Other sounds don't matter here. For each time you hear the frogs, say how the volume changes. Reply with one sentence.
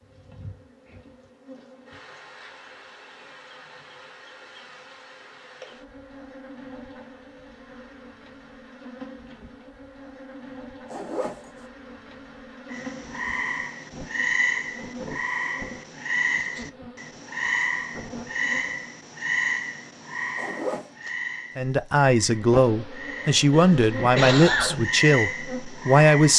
You can hear the frogs from 12.7 to 26.3 s, getting quieter then louder.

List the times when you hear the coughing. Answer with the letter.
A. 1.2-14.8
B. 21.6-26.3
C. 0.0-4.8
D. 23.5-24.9
D.